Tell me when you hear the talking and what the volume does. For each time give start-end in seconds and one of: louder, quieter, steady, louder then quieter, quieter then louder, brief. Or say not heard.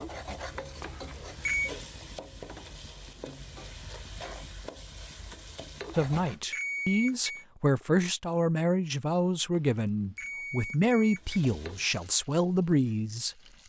6.0-13.3 steady.